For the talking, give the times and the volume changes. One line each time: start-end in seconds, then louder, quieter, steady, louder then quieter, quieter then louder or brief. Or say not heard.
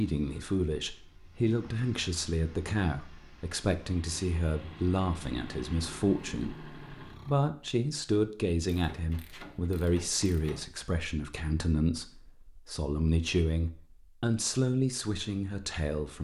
0.0-16.1 steady.